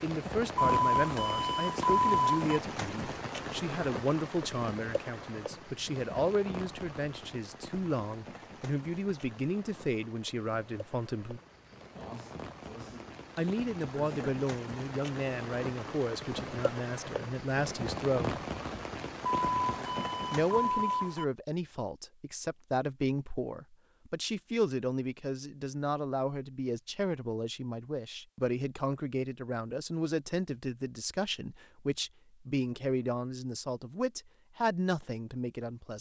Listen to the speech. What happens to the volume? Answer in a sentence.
The loudness of the speech stays about the same.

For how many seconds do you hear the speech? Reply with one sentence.
The speech can be heard for 32 seconds in total.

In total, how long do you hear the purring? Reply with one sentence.
You can't hear the purring here.